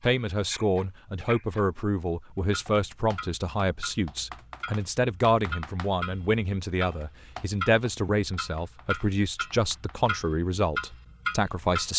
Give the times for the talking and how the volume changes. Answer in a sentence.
The talking can be heard from 0.0 to 11.9 s, at a steady volume.